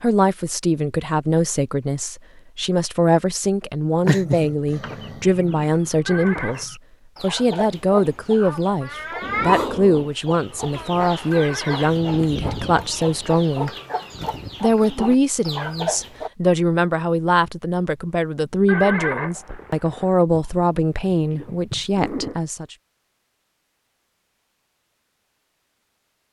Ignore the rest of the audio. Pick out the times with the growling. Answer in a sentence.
You can hear the growling from 4.0 to 5.7 s, from 9.2 to 10.1 s and from 20.3 to 22.4 s.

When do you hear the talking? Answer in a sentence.
You can hear the talking from 0.0 to 13.7 s and from 14.6 to 22.8 s.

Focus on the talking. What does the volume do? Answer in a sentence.
The volume of the talking stays about the same.